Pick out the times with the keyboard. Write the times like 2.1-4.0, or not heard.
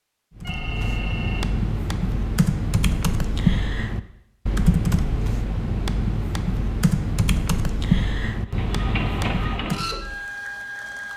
0.3-9.9.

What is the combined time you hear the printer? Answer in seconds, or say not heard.
3 s.